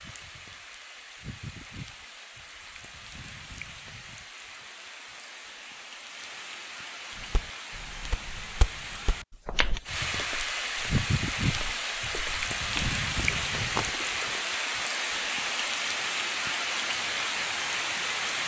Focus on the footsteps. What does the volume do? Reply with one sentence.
The loudness of the footsteps goes down, then up.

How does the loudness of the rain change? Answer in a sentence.
The loudness of the rain goes up.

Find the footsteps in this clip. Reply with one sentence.
The footsteps can be heard from 7.2 to 14.4 s.